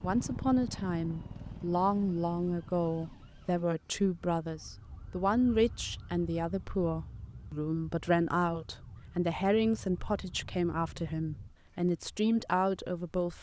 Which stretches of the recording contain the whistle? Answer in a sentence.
The whistle can't be heard in this clip.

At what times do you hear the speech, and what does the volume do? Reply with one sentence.
The speech can be heard from 0.0 to 13.3 s, at a steady volume.